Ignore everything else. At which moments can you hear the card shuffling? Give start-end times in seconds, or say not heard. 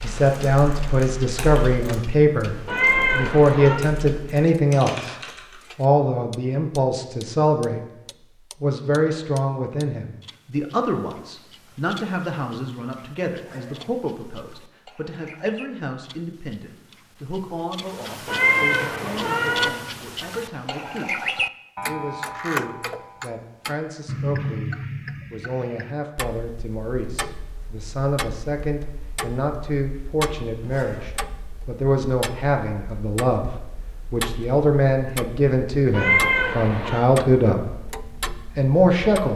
not heard.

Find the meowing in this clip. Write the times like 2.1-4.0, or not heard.
2.6-3.9, 18.2-19.7, 35.9-37.0.